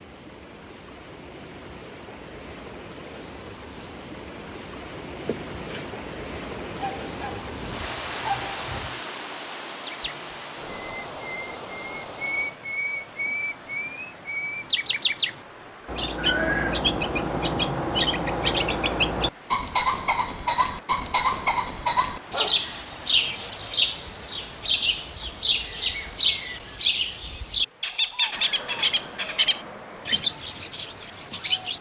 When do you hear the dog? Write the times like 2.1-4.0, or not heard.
6.8-9.0, 22.2-22.7.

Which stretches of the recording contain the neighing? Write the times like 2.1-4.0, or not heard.
5.2-6.0, 16.1-16.9, 28.3-30.2.